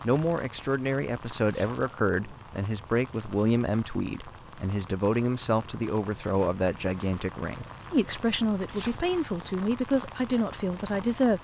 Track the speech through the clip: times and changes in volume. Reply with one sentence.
You can hear the speech from 0.0 to 11.3 s, at a steady volume.